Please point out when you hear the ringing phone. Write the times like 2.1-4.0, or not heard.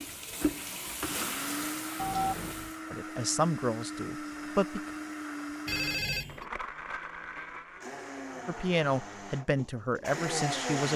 1.9-2.7, 5.7-6.5.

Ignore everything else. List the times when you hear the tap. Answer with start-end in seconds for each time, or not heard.
0.0-2.9.